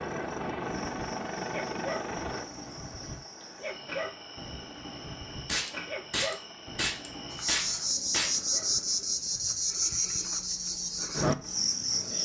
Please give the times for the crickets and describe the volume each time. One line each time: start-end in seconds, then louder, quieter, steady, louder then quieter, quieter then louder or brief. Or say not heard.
0.0-12.1 louder.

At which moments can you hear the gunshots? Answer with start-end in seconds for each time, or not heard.
5.5-8.4.